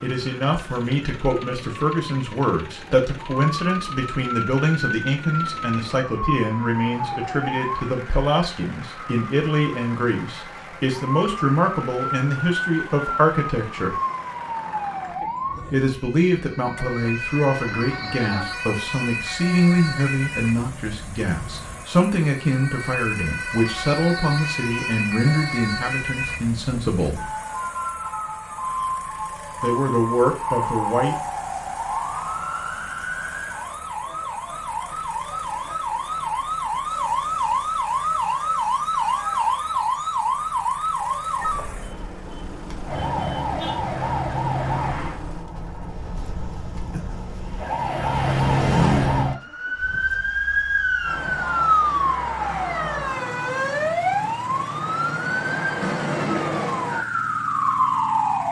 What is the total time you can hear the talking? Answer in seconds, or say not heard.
27 s.